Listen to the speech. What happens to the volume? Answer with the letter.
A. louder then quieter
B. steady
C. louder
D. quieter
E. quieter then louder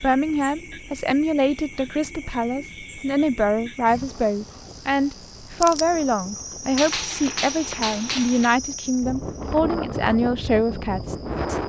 B.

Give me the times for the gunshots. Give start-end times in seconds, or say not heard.
6.8-8.6.